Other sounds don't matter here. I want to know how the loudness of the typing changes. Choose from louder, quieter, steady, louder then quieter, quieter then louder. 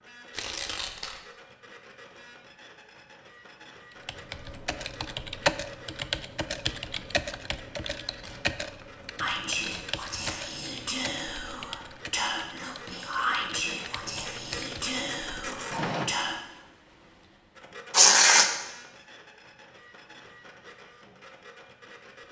quieter.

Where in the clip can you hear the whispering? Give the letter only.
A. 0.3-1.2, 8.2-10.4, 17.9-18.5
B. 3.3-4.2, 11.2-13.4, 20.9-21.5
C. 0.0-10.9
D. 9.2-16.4
D.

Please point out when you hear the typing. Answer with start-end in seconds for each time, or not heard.
4.0-15.0.